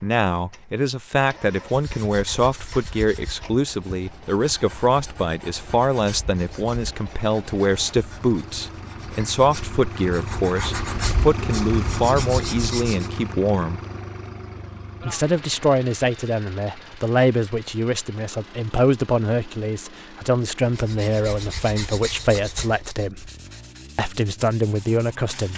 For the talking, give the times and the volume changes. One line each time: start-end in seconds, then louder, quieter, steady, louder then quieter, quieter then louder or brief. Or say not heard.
0.0-13.8 steady
15.0-23.3 steady
23.9-25.5 brief.